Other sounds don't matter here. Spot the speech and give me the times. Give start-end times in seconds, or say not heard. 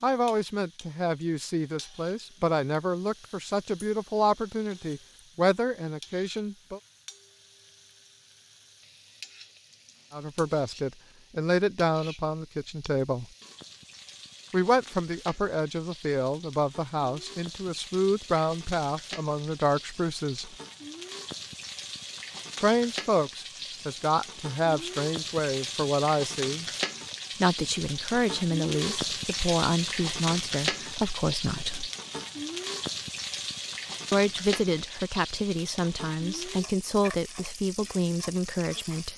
0.0-6.8, 10.1-13.2, 14.5-20.6, 22.6-26.6, 27.4-31.9, 34.1-39.1.